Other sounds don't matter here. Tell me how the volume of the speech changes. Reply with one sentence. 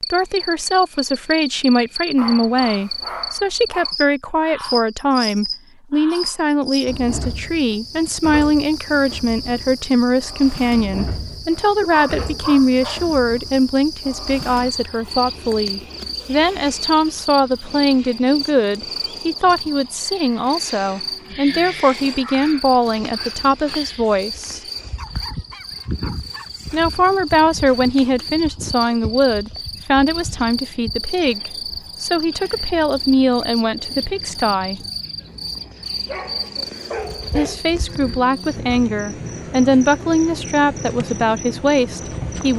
The loudness of the speech stays about the same.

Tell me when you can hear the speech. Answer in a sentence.
The speech can be heard from 0.1 to 24.6 s, from 26.7 to 34.8 s and from 37.4 to 42.5 s.